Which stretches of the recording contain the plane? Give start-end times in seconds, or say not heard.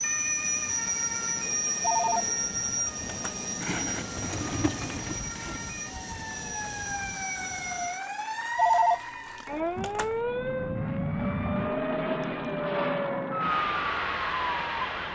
0.0-8.2, 9.8-15.1.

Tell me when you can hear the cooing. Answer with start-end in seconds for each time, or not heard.
3.6-5.6.